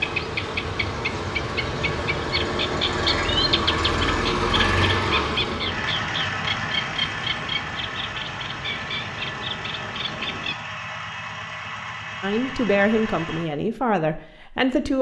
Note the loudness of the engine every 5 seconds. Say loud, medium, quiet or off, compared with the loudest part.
loud, loud, medium.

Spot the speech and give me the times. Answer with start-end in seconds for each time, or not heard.
12.2-14.9.